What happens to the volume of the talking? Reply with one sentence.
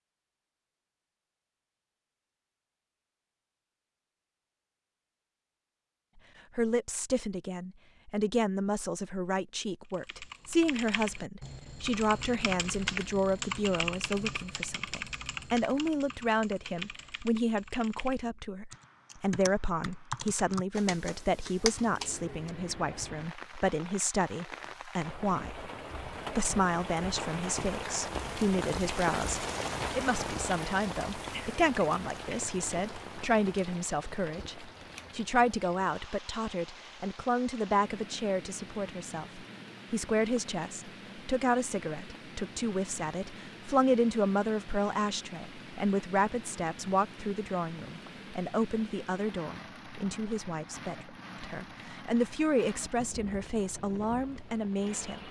The volume of the talking stays about the same.